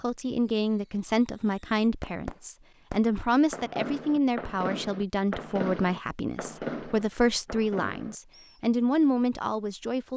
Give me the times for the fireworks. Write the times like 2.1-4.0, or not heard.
0.5-8.6.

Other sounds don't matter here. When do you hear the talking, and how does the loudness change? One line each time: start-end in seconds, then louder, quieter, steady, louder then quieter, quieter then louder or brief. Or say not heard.
0.0-10.1 steady.